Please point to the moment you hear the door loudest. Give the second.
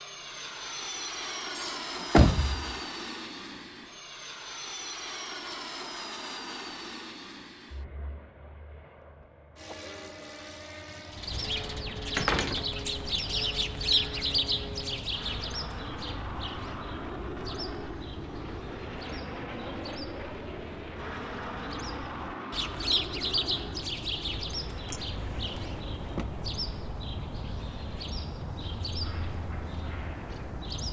2 s.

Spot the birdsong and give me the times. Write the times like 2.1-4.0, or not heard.
11.1-30.8.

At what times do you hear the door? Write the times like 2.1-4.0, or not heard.
1.6-2.8, 12.2-13.3, 24.9-26.2.